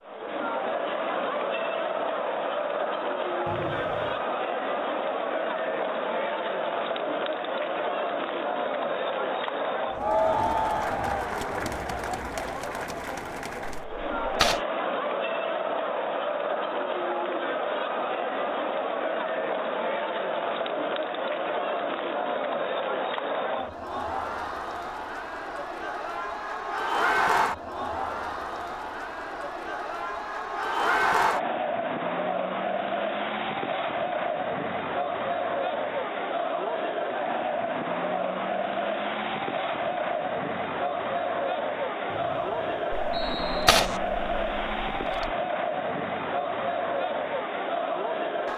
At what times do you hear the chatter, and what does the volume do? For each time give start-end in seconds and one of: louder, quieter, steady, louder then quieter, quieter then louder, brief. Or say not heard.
0.1-48.5 steady.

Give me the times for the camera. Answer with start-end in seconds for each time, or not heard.
13.8-14.6, 42.9-45.3.